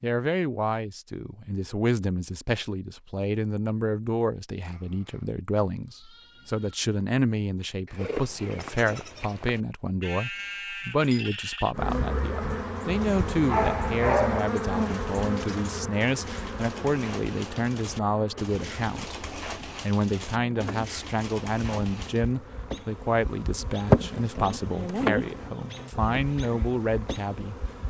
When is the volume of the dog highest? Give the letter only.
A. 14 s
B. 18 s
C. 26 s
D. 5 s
A.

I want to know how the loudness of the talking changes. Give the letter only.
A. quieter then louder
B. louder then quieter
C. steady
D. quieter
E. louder
C.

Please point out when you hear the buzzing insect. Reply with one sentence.
You can hear the buzzing insect from 11.7 to 27.8 s.